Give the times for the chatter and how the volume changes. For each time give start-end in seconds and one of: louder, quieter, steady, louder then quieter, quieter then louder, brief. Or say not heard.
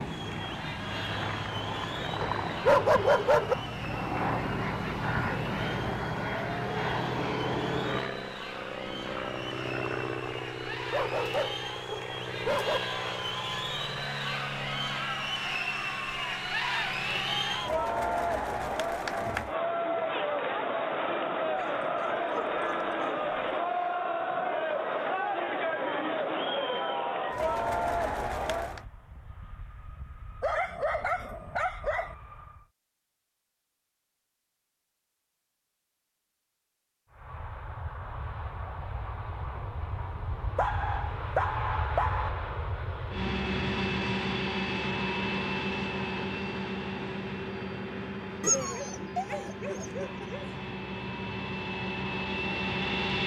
0.0-28.9 louder.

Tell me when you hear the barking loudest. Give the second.
3 s.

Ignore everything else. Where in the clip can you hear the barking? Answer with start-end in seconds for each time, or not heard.
2.5-3.5, 10.9-12.8, 21.6-23.6, 30.4-32.1, 40.5-42.3, 48.4-50.5.